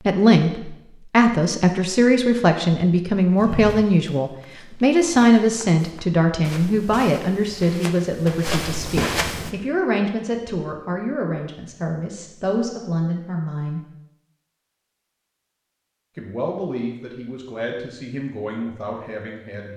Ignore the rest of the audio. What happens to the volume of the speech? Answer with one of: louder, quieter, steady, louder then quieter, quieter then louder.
quieter.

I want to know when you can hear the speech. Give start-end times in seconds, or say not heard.
0.1-13.8, 16.1-19.7.